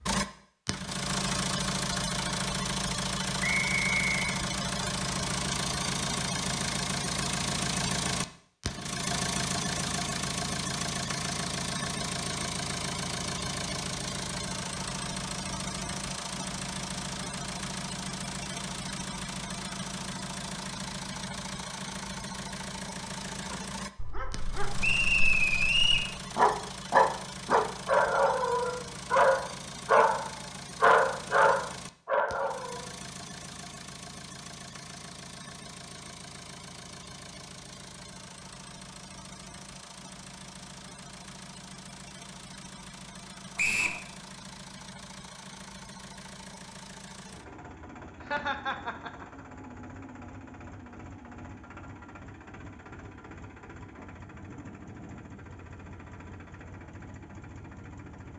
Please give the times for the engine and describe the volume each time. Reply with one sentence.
You can hear the engine from 0.0 to 58.3 s, getting quieter.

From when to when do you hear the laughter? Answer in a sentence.
You can hear the laughter from 48.2 to 49.5 s.